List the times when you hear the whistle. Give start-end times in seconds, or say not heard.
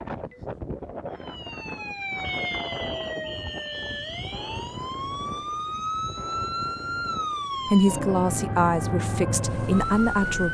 2.2-4.7.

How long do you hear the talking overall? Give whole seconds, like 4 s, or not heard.
3 s.